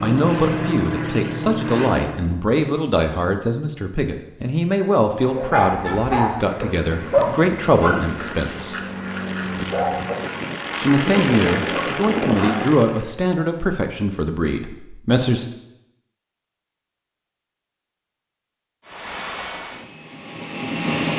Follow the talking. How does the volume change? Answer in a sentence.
The loudness of the talking stays about the same.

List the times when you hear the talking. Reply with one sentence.
You can hear the talking from 0.0 to 8.8 s and from 10.8 to 15.4 s.